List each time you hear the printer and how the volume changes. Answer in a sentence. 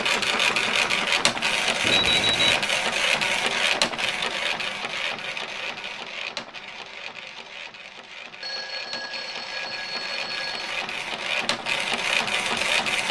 The printer can be heard from 0.0 to 13.0 s, getting quieter then louder.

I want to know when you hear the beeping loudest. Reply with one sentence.
The loudest moment of the beeping is at 2 seconds.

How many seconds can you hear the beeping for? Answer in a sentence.
You can hear the beeping for 3 seconds altogether.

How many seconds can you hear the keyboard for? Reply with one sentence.
The keyboard can't be heard in this clip.